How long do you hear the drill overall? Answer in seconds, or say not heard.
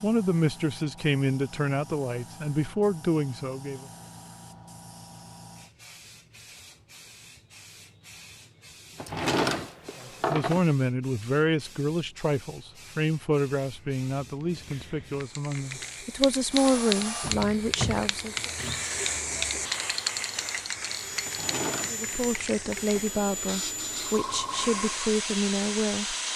10 s.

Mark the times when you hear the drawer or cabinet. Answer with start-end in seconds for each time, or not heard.
8.9-10.6, 21.2-22.1.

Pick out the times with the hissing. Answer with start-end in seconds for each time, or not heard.
0.0-26.3.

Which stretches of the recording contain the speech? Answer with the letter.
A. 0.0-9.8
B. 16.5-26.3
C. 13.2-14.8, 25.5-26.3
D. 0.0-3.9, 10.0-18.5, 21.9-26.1
D.